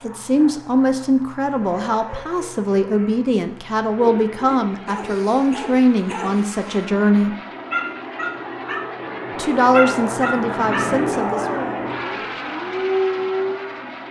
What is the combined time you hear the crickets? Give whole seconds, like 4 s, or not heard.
not heard.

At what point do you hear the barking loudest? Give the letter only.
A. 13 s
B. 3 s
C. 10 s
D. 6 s
A.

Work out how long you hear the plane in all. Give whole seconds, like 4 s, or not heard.
14 s.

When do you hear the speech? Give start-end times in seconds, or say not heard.
0.0-7.3, 9.3-11.6.